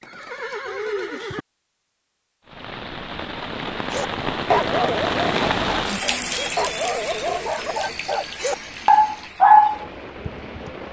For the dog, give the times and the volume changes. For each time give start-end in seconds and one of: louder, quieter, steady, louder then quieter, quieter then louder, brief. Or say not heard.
3.9-10.3 quieter then louder.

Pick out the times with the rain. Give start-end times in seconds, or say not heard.
2.5-10.8.